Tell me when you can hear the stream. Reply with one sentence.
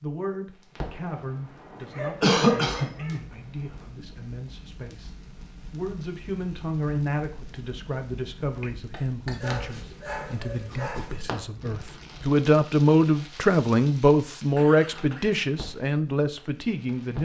The stream can't be heard in this clip.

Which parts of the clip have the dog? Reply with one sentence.
You can hear the dog from 1.8 to 3.2 s and from 9.4 to 11.4 s.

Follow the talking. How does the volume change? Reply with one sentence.
The volume of the talking goes up.